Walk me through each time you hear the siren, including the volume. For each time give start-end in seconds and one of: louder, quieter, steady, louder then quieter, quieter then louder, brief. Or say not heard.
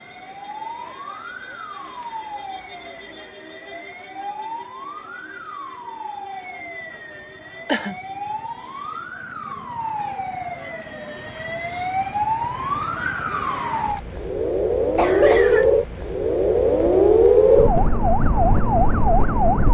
0.0-19.7 louder.